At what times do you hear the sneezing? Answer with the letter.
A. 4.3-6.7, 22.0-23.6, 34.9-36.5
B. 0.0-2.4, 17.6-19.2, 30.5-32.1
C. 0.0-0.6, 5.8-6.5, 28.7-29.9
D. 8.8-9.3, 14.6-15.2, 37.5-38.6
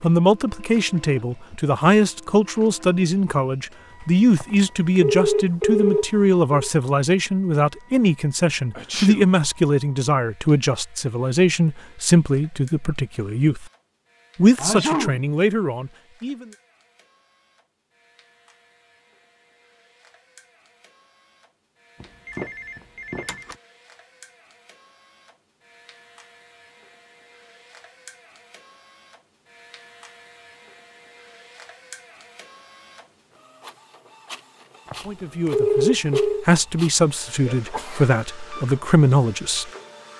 D.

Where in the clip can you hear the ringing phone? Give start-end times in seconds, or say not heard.
4.3-6.7, 22.0-23.6, 34.9-36.5.